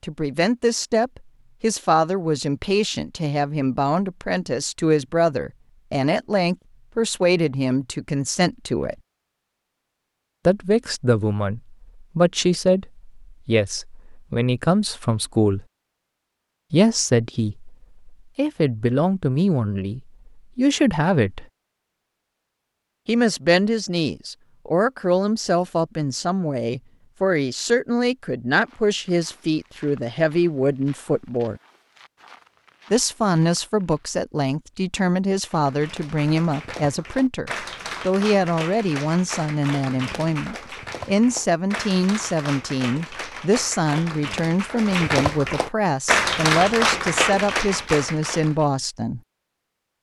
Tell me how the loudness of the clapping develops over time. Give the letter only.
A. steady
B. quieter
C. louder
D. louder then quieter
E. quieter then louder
C.